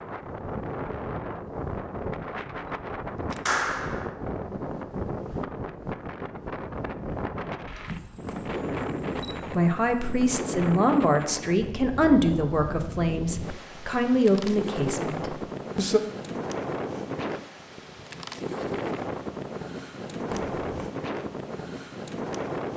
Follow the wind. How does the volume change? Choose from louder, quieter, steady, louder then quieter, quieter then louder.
steady.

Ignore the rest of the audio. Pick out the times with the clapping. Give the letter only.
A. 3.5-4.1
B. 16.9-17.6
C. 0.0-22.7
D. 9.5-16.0
A.